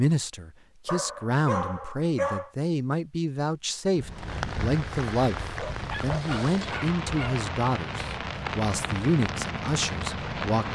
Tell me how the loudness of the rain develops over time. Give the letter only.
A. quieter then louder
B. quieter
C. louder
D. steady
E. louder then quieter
D.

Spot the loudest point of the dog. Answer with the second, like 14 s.
2 s.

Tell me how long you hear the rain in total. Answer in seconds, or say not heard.
7 s.